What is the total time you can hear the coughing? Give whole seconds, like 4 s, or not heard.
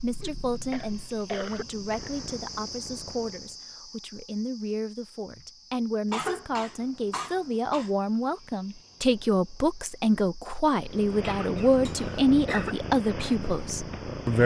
5 s.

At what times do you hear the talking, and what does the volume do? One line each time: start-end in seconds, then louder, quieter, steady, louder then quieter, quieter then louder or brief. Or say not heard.
0.0-14.4 louder.